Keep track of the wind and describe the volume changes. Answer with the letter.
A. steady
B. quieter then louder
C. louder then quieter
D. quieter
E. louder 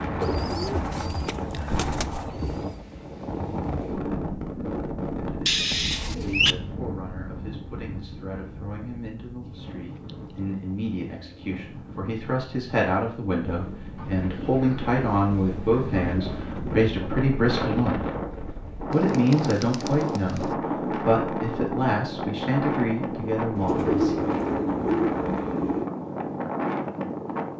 B.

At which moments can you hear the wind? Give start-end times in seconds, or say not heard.
0.0-27.5.